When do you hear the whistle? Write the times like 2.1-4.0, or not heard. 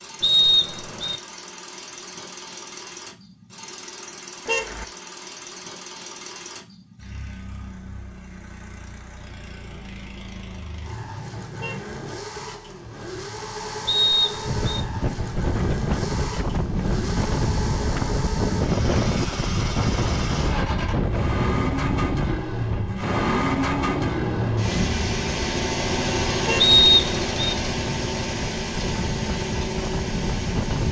0.2-1.2, 13.8-14.7, 26.6-27.6.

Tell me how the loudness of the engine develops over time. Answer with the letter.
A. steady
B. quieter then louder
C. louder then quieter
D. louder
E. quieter
D.